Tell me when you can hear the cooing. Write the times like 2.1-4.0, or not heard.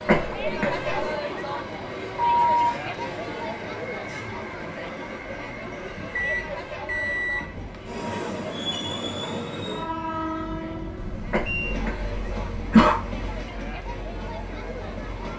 not heard.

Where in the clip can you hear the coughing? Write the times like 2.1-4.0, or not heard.
0.1-1.1, 11.3-12.9.